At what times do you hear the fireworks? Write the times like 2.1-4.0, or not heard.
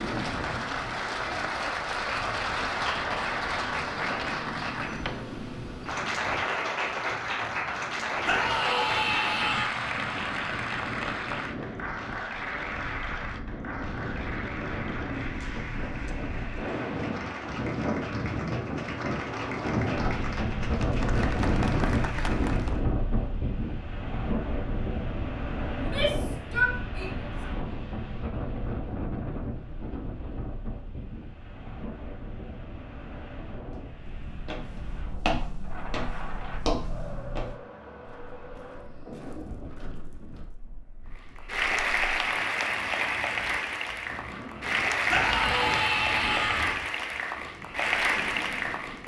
not heard.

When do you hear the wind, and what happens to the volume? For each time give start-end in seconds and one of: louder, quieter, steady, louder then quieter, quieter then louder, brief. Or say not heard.
0.0-49.0 louder then quieter.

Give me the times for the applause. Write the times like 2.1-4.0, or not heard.
0.0-22.8, 41.1-49.0.